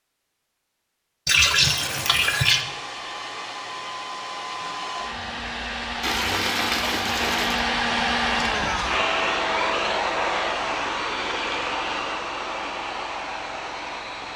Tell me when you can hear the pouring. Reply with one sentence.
The pouring can be heard from 1.2 to 2.6 s, from 6.0 to 7.7 s and from 11.2 to 11.8 s.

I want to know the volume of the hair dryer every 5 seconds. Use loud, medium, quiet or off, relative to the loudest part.
medium, loud, loud.